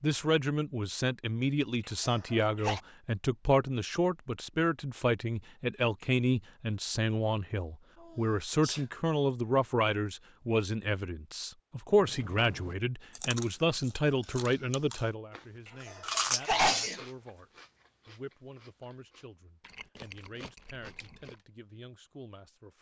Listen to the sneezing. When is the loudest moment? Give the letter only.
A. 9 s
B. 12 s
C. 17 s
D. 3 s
C.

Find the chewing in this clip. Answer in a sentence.
You can hear the chewing from 11.9 to 21.4 s.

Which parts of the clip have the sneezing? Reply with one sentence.
The sneezing can be heard from 1.9 to 2.8 s, from 8.0 to 8.8 s and from 15.7 to 17.0 s.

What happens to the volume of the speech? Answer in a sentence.
The loudness of the speech goes down.